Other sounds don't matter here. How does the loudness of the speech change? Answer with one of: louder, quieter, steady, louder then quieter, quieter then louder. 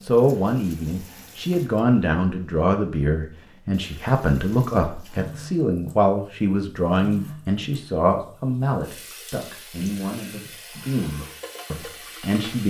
quieter.